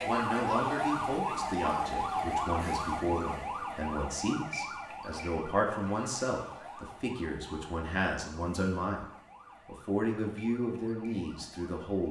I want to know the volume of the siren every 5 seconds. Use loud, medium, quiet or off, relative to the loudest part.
loud, quiet, quiet.